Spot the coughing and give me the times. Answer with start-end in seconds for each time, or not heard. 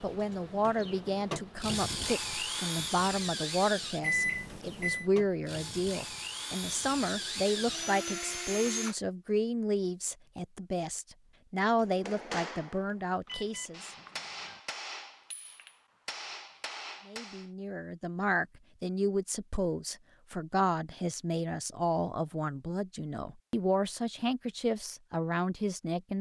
not heard.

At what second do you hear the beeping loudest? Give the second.
4 s.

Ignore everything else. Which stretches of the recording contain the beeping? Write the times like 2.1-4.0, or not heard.
4.0-5.0, 13.2-14.6.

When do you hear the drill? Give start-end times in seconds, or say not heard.
0.0-8.9.